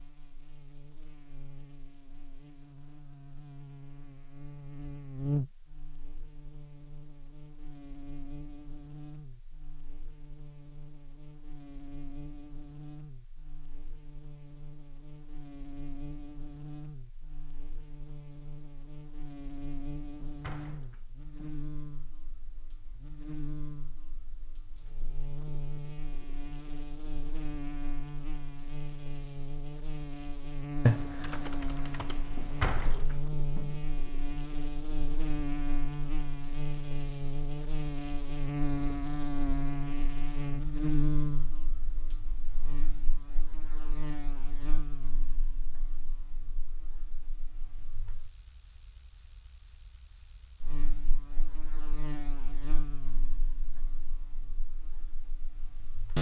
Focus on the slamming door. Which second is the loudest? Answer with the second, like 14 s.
33 s.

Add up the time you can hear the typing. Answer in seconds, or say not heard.
2 s.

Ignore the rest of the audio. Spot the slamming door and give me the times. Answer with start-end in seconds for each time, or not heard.
20.2-21.6, 32.4-33.9.